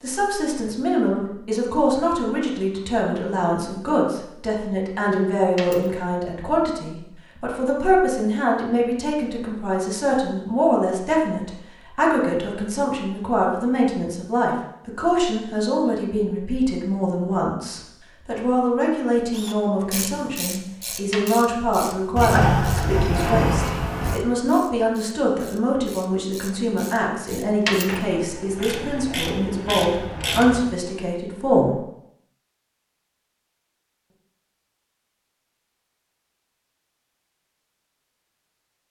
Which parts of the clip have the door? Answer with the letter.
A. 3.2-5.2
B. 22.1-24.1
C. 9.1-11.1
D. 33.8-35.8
B.